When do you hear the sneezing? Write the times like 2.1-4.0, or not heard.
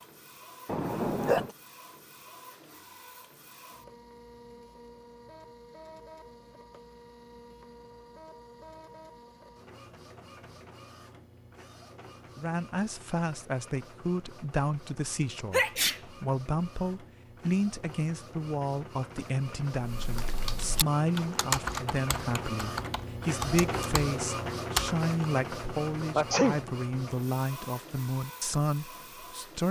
0.7-1.5, 15.5-16.0, 26.1-26.6.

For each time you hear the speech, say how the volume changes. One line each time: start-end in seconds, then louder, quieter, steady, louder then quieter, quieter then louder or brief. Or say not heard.
12.3-29.6 steady.